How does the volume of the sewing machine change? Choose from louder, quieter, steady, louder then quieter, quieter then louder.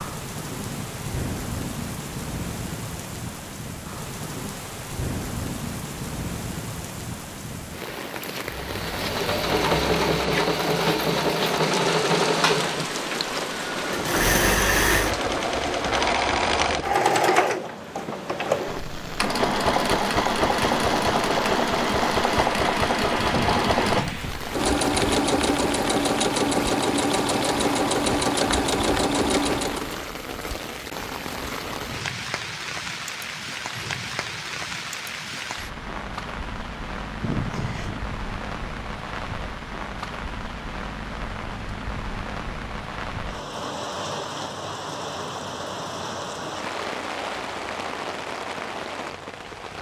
steady.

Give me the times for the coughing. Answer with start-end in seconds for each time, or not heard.
0.6-1.2, 37.2-38.0.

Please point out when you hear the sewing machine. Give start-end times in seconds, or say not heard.
8.4-30.0.